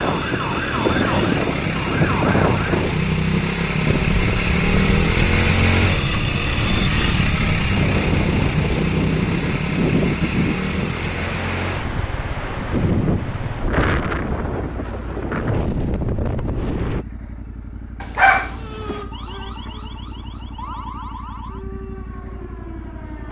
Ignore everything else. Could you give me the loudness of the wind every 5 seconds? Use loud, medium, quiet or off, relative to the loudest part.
loud, loud, loud, loud, off.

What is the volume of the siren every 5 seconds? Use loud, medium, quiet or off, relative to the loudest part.
loud, off, off, medium, medium.